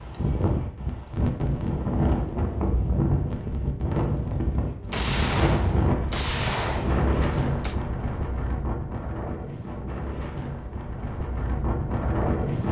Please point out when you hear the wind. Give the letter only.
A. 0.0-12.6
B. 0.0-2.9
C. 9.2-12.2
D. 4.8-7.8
A.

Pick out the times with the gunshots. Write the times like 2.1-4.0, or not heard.
4.8-7.8.